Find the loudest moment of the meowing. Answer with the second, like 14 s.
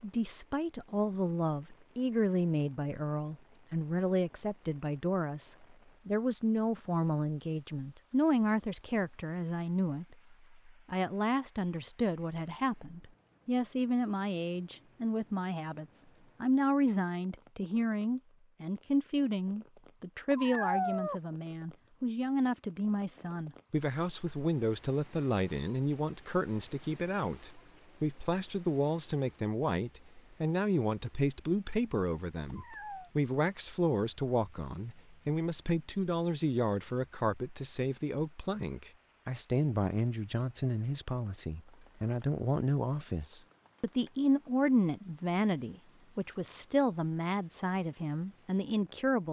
21 s.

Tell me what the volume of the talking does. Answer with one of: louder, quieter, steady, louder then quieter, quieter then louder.
steady.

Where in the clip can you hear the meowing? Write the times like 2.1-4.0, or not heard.
20.3-21.2, 32.5-33.1.